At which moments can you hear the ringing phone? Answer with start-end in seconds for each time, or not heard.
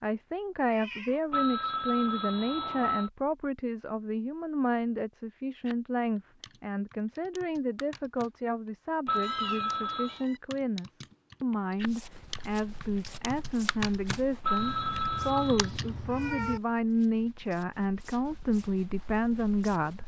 1.3-3.1, 9.1-10.2, 14.4-15.7.